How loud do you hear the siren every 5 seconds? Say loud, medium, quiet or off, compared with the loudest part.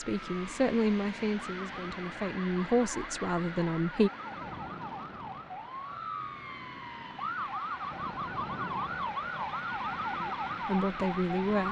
medium, loud, loud.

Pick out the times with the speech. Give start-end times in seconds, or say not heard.
0.0-4.1, 10.2-11.6.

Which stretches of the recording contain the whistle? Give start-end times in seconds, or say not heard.
not heard.